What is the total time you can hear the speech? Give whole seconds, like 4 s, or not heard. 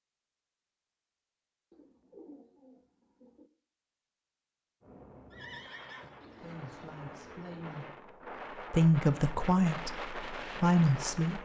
5 s.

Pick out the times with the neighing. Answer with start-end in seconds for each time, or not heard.
5.3-6.2.